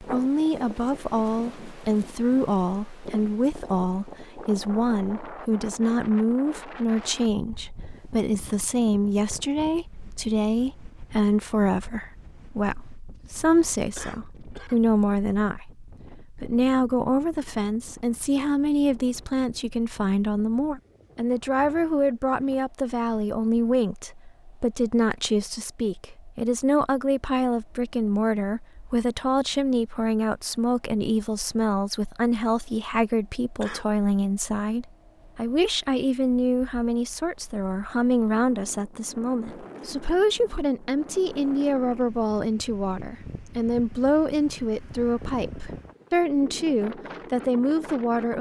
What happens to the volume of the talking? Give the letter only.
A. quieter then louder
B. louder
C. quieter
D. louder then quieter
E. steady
E.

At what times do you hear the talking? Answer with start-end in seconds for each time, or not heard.
0.0-48.3.